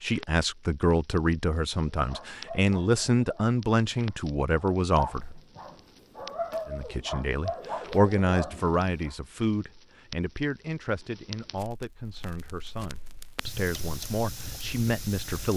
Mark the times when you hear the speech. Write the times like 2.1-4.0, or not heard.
0.0-5.2, 6.7-15.5.